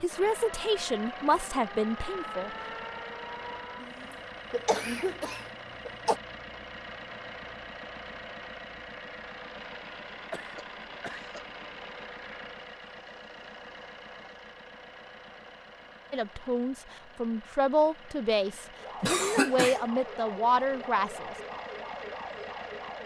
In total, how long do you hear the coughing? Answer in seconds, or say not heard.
4 s.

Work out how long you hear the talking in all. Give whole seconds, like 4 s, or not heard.
8 s.